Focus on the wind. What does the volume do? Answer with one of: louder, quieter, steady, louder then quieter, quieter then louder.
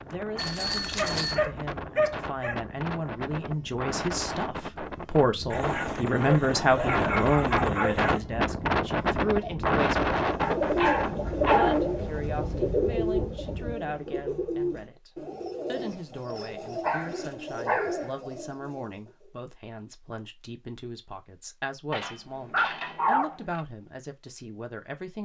louder then quieter.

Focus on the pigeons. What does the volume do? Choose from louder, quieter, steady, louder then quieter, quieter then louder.
quieter.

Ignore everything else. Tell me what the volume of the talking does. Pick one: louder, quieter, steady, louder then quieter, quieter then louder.
louder then quieter.